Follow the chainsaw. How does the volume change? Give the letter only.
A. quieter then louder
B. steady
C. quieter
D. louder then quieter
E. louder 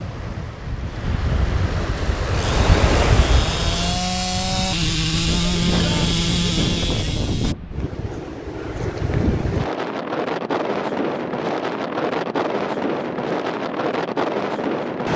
E.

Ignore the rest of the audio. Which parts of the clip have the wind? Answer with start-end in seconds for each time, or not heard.
0.0-15.1.